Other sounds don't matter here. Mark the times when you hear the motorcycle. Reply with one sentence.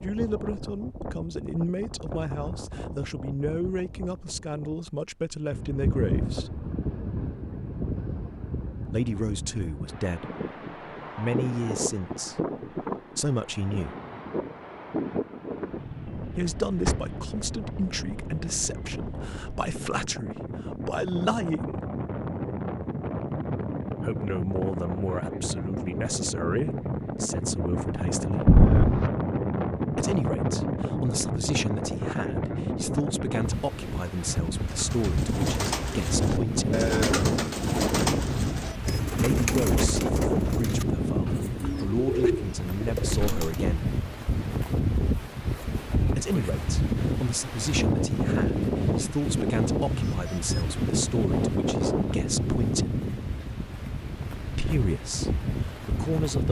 You can't hear the motorcycle here.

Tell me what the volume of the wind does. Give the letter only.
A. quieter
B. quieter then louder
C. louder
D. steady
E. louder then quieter
C.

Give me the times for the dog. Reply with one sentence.
The dog can't be heard in this clip.